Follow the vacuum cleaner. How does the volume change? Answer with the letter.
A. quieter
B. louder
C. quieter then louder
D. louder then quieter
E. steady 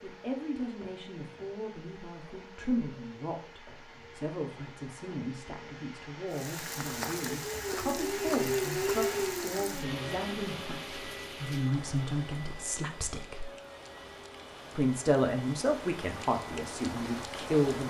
D.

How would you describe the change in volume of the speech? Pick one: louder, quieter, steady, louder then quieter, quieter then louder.
louder.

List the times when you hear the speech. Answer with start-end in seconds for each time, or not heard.
0.0-13.5, 14.8-17.8.